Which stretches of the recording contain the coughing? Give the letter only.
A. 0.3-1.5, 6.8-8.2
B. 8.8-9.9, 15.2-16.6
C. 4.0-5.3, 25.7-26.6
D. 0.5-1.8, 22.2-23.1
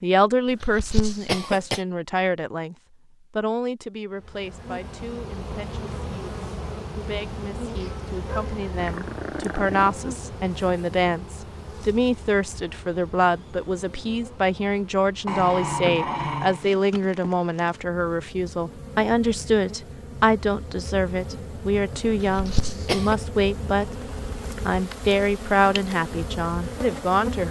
D.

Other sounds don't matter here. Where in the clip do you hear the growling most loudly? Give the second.
16 s.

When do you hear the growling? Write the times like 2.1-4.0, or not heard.
8.8-9.9, 15.2-16.6.